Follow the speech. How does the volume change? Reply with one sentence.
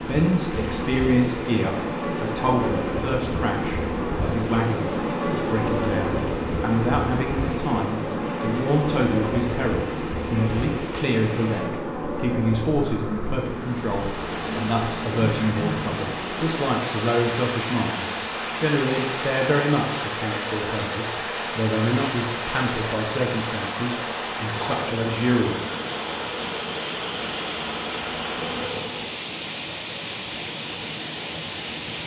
The loudness of the speech stays about the same.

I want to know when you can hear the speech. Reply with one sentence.
You can hear the speech from 0.1 to 25.6 s.